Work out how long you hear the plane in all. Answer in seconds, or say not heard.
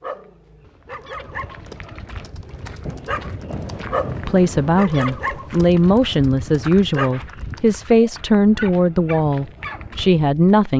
not heard.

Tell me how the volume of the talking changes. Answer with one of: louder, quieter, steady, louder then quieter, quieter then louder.
steady.